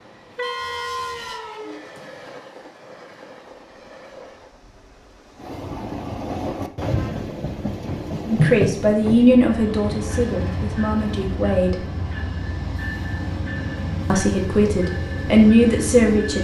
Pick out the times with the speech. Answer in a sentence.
The speech can be heard from 8.2 to 11.8 s and from 14.1 to 16.3 s.